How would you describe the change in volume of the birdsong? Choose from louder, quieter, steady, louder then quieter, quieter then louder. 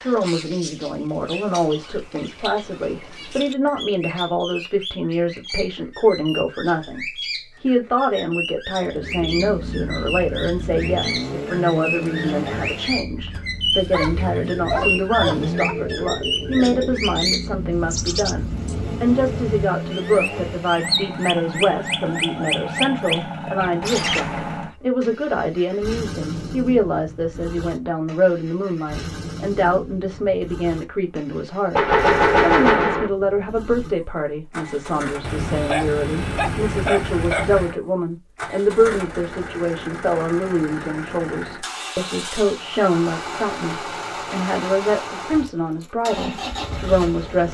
louder.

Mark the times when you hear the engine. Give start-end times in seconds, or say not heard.
8.8-47.4.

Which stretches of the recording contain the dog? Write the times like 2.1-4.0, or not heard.
13.7-15.8, 35.2-37.8.